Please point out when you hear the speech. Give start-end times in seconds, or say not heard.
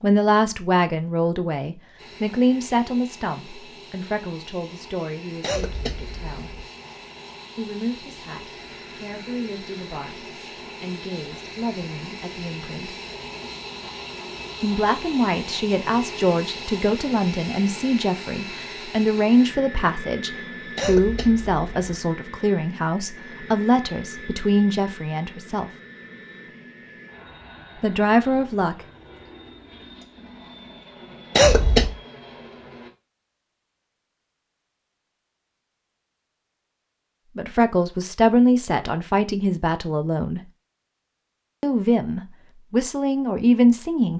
0.0-6.7, 7.5-12.9, 14.6-25.7, 27.8-28.9, 37.4-40.4, 41.6-44.1.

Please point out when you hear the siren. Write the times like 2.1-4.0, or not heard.
not heard.